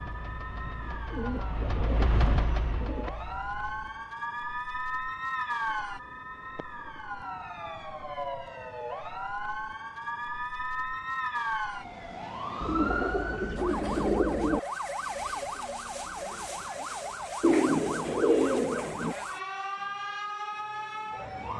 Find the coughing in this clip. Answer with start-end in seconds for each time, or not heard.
not heard.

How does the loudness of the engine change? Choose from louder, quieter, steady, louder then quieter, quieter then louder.
louder then quieter.